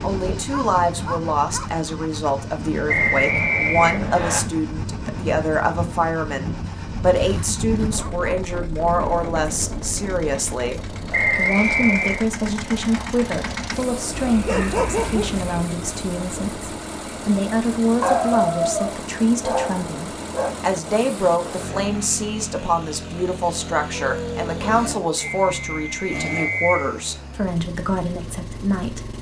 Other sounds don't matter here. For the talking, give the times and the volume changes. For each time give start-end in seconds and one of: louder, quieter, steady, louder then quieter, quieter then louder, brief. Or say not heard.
0.0-29.1 steady.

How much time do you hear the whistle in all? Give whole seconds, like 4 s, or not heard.
4 s.